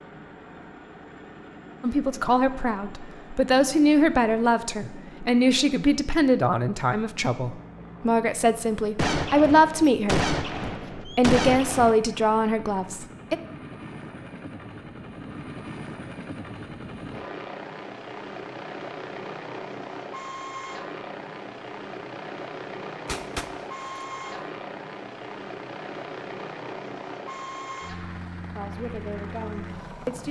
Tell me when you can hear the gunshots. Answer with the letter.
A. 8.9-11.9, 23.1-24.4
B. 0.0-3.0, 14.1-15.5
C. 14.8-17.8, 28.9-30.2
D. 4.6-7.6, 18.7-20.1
A.